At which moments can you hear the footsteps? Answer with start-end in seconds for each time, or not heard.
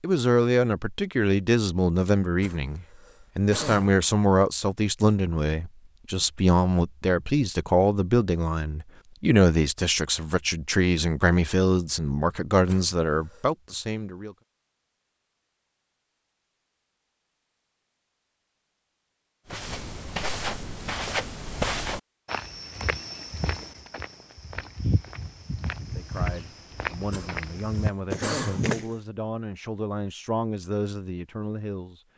19.4-28.9.